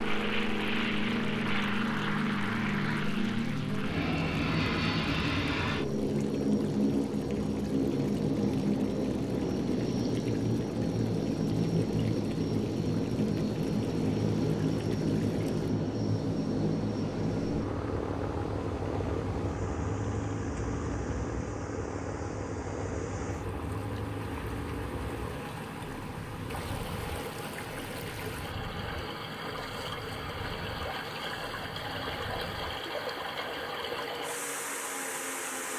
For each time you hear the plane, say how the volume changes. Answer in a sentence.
The plane can be heard from 0.0 to 35.7 s, getting quieter.